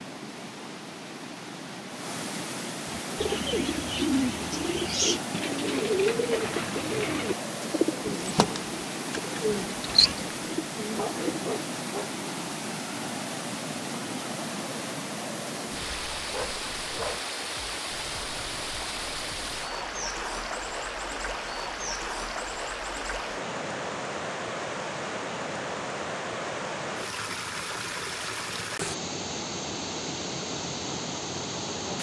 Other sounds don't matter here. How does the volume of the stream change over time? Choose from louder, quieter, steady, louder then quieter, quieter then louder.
steady.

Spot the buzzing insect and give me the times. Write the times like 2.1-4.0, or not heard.
not heard.